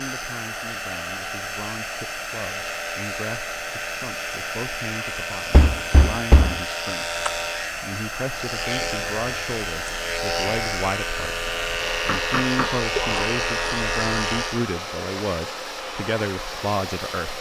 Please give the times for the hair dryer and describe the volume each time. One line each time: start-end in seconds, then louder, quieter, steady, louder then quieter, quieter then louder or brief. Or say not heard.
0.0-17.3 steady.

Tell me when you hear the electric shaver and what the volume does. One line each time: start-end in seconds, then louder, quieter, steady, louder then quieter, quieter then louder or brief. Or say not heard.
0.0-14.7 louder.